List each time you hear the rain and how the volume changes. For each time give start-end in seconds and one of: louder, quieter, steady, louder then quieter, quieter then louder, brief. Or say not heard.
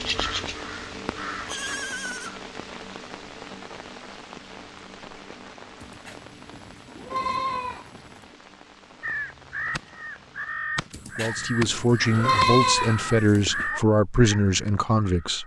0.0-10.7 quieter.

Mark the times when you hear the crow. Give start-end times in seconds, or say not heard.
0.0-1.8, 9.0-15.4.